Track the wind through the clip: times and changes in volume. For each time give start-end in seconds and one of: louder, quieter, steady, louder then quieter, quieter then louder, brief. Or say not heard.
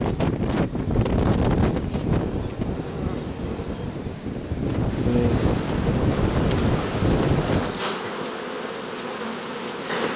0.0-7.8 quieter then louder.